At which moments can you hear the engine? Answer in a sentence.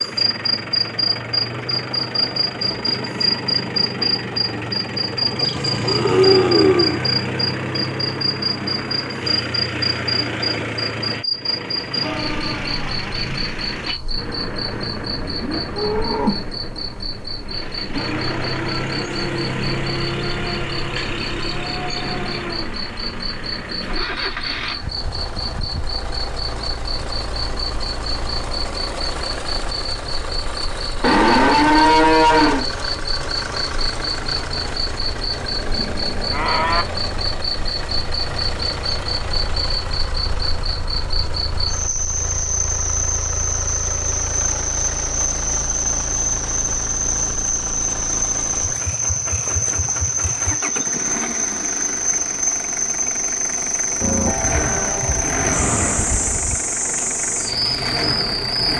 You can hear the engine from 0.0 to 58.7 s.